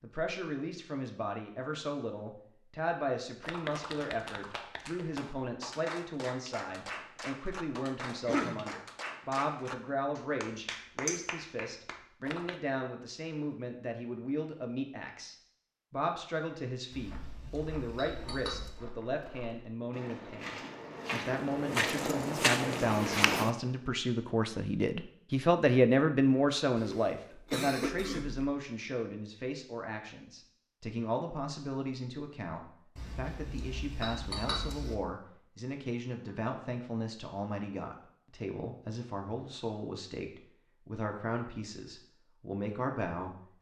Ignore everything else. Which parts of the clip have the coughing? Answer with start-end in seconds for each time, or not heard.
8.1-8.7, 26.8-28.4.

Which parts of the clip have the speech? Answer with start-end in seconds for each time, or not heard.
0.0-43.5.